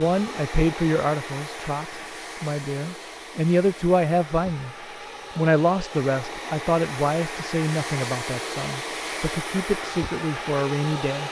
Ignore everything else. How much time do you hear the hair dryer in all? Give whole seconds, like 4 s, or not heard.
11 s.